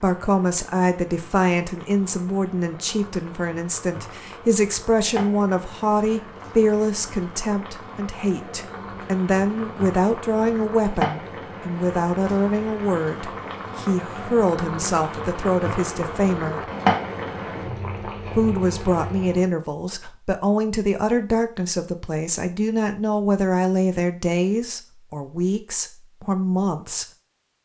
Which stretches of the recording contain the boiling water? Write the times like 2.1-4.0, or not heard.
0.0-19.5.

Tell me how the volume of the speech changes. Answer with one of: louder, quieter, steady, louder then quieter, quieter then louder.
steady.